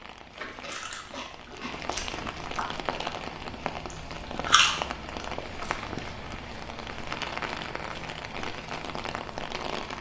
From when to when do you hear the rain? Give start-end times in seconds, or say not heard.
0.0-9.9.